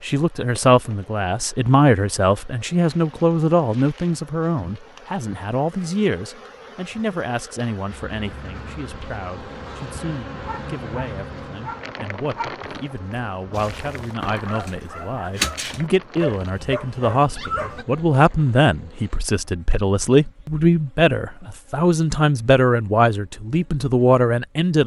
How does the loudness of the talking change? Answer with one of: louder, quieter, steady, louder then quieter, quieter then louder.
quieter then louder.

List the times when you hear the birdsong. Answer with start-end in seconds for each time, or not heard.
not heard.